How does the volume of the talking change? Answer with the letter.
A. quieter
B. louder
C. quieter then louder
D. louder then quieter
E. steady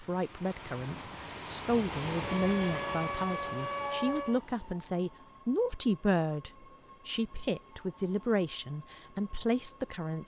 E.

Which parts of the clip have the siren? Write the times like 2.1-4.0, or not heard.
2.2-4.4.